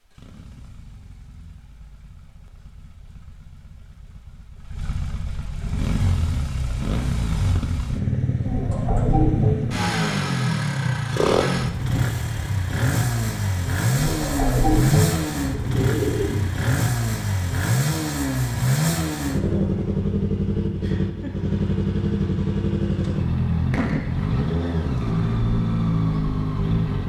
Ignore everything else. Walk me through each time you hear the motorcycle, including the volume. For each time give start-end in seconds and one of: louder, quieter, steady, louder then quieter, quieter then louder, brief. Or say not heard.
0.0-27.0 louder.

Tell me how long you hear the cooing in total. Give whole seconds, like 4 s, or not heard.
4 s.